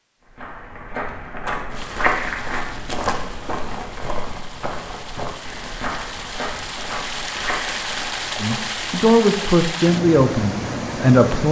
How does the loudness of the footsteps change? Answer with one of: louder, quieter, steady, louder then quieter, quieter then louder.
quieter.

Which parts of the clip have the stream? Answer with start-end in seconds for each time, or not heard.
1.7-11.4.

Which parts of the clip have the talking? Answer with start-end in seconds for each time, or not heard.
8.4-11.4.